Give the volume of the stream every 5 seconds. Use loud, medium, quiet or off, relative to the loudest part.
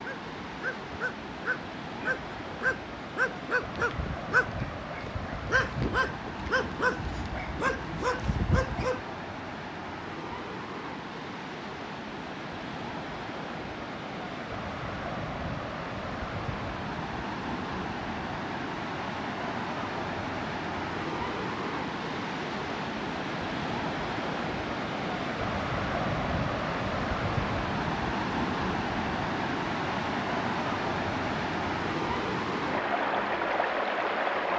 medium, medium, medium, medium, loud, loud, loud.